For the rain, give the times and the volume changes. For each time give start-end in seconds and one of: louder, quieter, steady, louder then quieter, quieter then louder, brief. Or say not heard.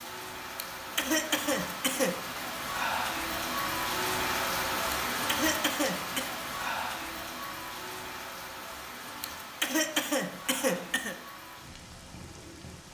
0.0-12.8 louder then quieter.